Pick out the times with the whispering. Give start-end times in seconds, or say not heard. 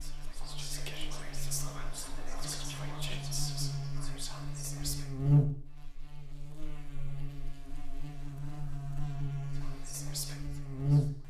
0.0-5.1, 9.6-11.2.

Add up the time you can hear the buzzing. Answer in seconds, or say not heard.
11 s.